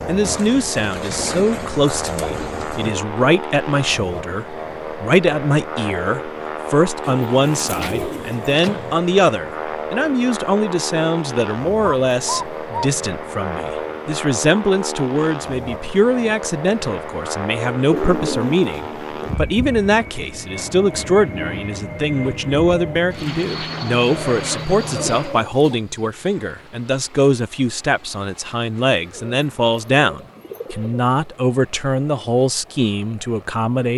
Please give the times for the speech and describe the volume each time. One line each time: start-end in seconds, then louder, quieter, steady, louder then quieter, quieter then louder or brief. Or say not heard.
0.1-33.9 steady.